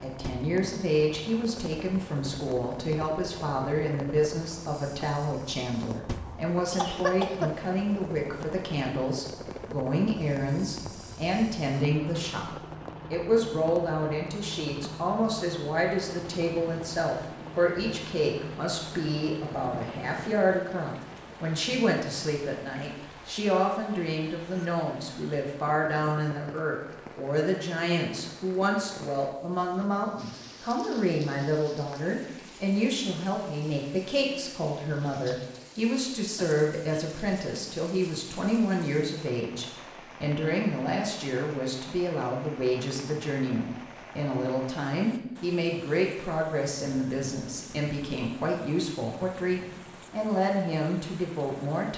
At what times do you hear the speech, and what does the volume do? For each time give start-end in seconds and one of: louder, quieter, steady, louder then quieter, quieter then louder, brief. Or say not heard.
0.0-12.5 steady
13.1-51.9 steady.